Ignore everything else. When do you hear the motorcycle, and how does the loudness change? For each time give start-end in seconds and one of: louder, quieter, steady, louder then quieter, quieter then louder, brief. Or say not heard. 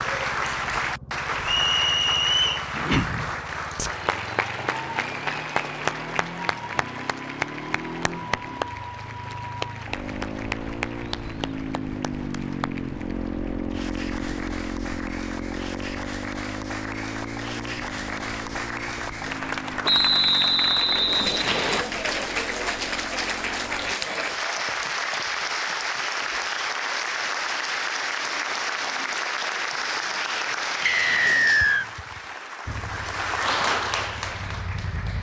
0.0-23.9 louder then quieter
32.6-35.1 brief.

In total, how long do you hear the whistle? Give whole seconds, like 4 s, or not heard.
4 s.